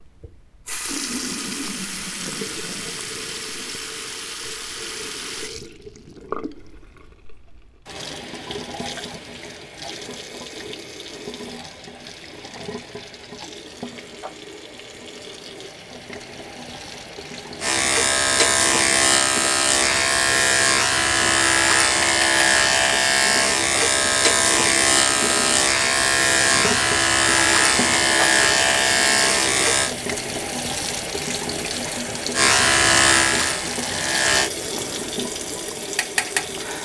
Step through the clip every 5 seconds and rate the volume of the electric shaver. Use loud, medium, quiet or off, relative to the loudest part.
off, off, off, loud, loud, loud, loud, off.